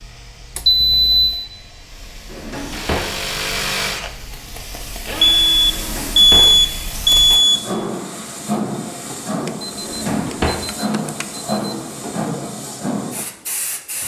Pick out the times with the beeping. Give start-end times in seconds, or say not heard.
0.6-1.4, 5.2-7.6, 9.4-11.6.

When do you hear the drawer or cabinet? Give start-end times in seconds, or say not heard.
2.3-3.1, 5.7-6.5, 9.8-10.6.